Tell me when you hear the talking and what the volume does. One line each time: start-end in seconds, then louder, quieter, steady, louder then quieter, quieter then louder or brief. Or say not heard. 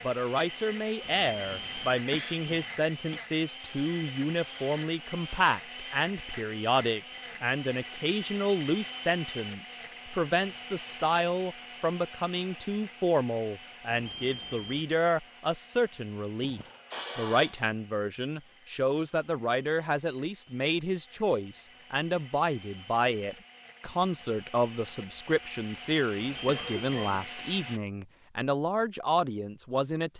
0.0-30.1 steady.